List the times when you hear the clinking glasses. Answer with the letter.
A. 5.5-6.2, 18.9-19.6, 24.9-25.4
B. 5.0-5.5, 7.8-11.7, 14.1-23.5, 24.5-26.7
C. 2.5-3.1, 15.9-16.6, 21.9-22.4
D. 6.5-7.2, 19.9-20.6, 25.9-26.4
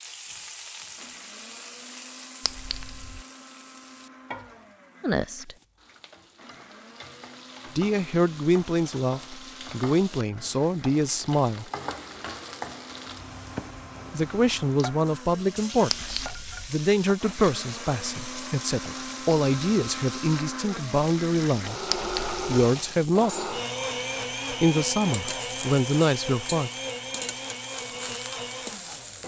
C.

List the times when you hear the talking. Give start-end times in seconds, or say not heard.
5.0-5.5, 7.8-11.7, 14.1-23.5, 24.5-26.7.